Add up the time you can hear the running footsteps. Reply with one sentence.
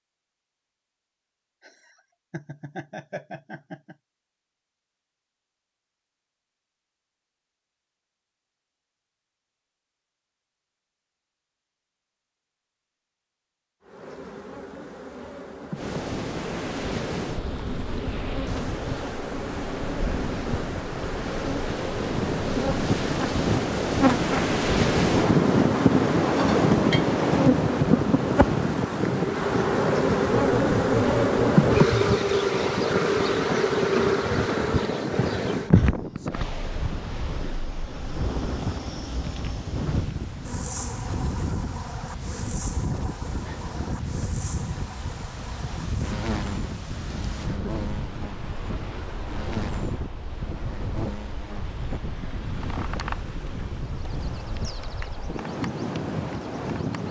You can't hear the running footsteps here.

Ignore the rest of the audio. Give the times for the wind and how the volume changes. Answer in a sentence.
The wind can be heard from 15.8 to 57.0 s, getting louder then quieter.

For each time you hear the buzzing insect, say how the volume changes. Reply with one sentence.
You can hear the buzzing insect from 13.8 to 57.0 s, getting louder then quieter.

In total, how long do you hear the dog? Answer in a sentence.
The dog can't be heard in this clip.